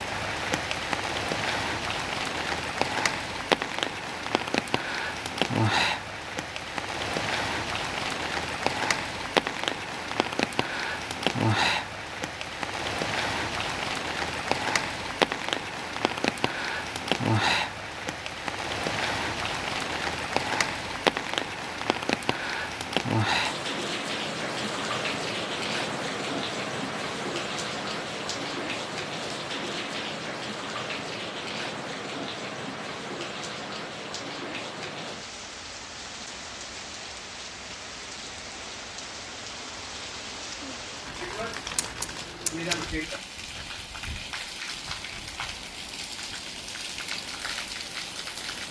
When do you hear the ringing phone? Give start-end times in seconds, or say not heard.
not heard.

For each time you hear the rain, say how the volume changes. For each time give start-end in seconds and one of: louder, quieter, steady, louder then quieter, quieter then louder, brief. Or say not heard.
0.0-48.6 quieter.